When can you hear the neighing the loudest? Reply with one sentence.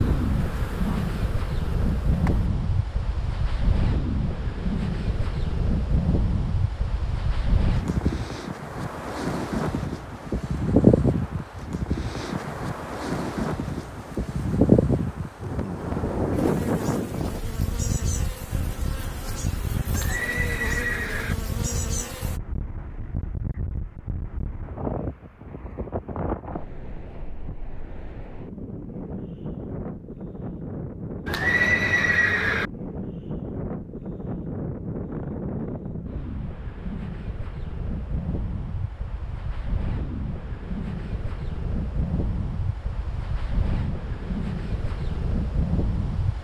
The volume of the neighing peaks at 32 seconds.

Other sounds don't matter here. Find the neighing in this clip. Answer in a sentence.
You can hear the neighing from 19.9 to 21.4 s and from 31.2 to 32.7 s.